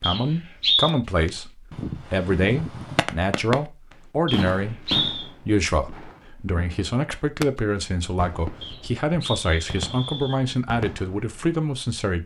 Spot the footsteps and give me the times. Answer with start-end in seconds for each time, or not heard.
not heard.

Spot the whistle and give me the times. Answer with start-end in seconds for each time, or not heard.
0.0-0.9, 4.2-5.2, 8.6-10.4.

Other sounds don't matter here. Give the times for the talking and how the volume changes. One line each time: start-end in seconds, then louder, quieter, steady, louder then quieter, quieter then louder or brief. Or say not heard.
0.0-1.5 brief
2.1-12.2 steady.